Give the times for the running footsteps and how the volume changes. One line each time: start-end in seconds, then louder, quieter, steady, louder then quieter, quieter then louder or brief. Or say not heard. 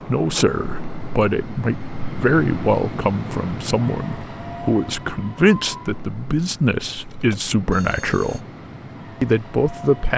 not heard.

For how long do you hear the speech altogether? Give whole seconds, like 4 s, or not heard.
9 s.